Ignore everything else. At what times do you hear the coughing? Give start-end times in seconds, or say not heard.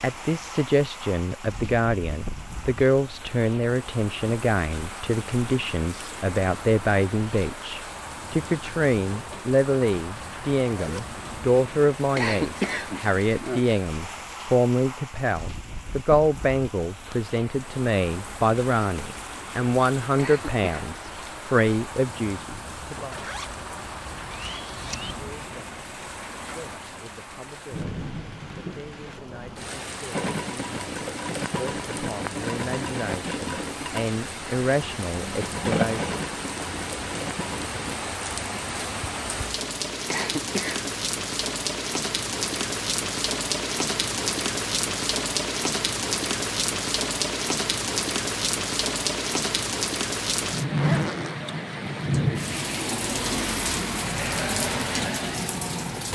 12.2-13.6, 20.1-20.6, 40.0-40.9.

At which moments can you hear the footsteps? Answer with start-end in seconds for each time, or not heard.
not heard.